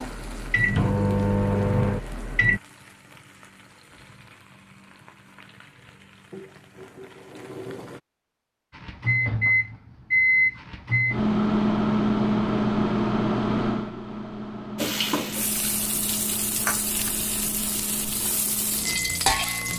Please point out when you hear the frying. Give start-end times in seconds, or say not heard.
0.0-8.0, 14.8-19.7.